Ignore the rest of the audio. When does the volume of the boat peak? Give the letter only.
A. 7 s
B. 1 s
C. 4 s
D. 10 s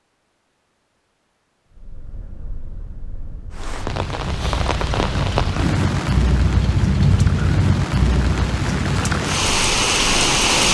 A.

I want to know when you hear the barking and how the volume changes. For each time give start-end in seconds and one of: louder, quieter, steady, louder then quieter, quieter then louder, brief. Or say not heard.
not heard.